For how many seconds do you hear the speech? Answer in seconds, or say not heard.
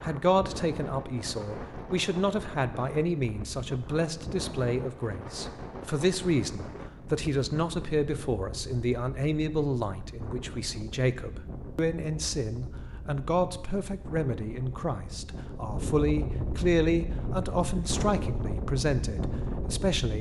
20 s.